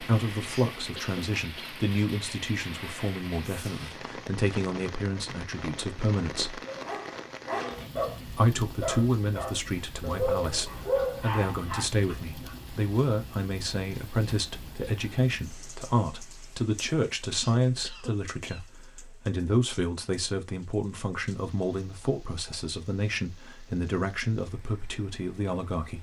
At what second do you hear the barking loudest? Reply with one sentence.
The volume of the barking peaks at 11 seconds.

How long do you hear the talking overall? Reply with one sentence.
The talking can be heard for 24 seconds in total.